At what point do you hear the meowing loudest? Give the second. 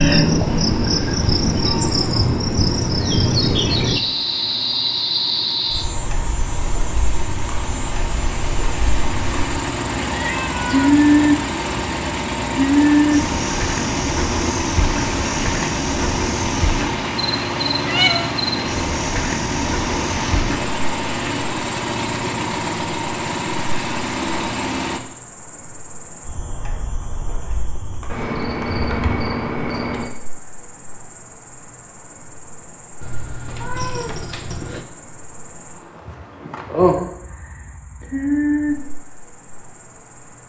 18 s.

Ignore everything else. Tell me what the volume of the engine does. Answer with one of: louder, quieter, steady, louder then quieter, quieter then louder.
louder.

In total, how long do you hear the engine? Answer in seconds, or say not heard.
25 s.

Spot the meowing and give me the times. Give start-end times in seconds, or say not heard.
10.1-11.0, 17.8-18.4, 33.0-34.9.